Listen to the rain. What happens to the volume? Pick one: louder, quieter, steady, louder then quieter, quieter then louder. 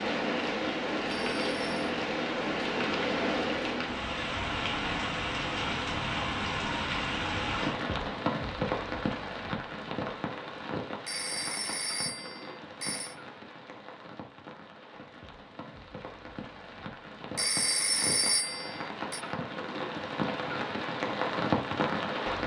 quieter then louder.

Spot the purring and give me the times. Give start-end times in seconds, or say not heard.
not heard.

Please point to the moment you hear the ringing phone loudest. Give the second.
18 s.